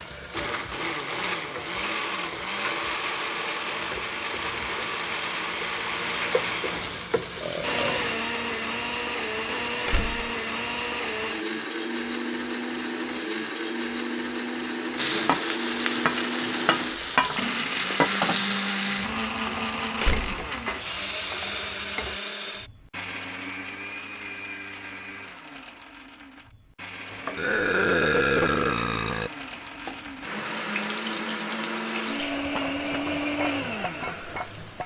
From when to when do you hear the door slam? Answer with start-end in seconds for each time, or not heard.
9.8-10.3, 20.0-20.4.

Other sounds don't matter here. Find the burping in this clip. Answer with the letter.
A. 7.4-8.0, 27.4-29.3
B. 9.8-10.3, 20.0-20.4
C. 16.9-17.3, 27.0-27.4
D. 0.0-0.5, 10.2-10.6
A.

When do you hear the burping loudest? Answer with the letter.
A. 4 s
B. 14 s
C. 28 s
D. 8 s
C.